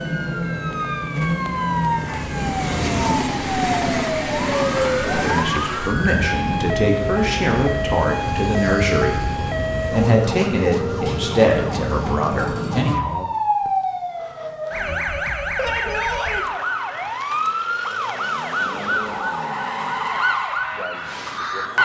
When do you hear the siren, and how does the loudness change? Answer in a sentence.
The siren can be heard from 0.0 to 21.8 s, at a steady volume.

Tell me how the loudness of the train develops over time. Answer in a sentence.
The loudness of the train goes up, then down.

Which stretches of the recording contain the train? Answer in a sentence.
You can hear the train from 0.0 to 10.1 s.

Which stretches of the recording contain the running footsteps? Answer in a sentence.
The running footsteps can't be heard in this clip.